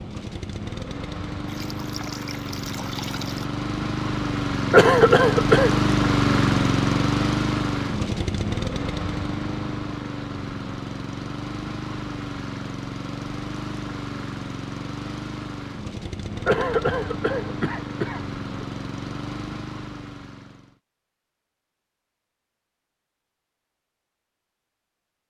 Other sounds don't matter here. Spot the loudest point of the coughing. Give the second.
5 s.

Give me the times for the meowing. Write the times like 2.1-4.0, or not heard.
not heard.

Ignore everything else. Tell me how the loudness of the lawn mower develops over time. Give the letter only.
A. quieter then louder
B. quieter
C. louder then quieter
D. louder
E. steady
C.